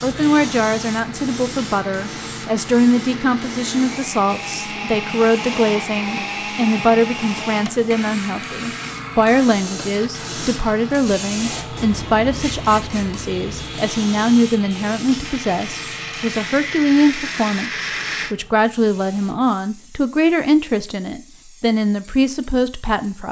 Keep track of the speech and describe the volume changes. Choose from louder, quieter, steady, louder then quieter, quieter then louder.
steady.